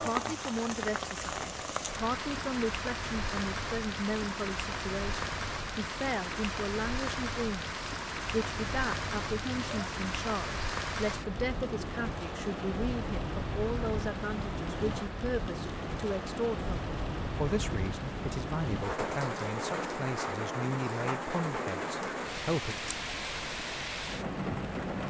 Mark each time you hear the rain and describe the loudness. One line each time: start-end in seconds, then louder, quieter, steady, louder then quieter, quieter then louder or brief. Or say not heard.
0.0-25.0 steady.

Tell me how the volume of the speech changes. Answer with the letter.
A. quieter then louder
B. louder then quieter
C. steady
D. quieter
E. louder
C.